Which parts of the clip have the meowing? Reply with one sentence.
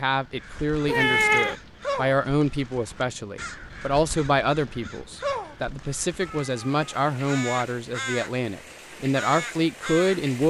You can hear the meowing from 0.8 to 1.6 s and from 6.2 to 7.1 s.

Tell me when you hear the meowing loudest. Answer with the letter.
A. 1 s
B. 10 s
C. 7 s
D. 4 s
A.